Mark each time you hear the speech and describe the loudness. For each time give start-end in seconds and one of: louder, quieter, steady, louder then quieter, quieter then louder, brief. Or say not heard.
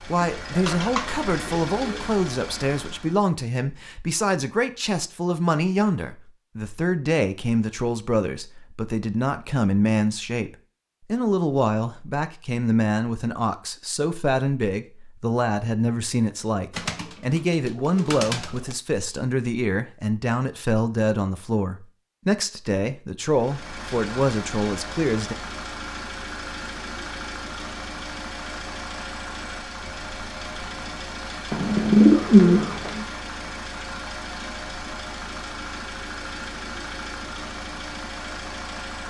0.1-25.4 steady.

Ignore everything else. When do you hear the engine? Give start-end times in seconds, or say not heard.
0.0-3.3, 23.3-39.0.